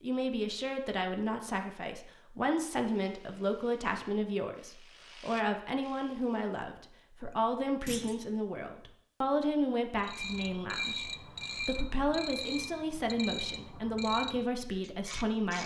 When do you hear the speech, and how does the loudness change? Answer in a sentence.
You can hear the speech from 0.0 to 15.6 s, at a steady volume.